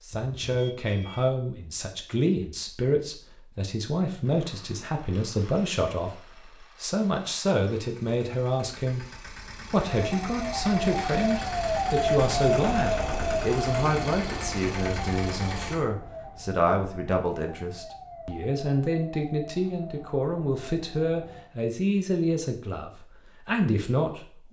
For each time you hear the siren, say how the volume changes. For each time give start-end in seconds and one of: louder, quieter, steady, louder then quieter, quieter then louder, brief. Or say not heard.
9.9-21.5 quieter.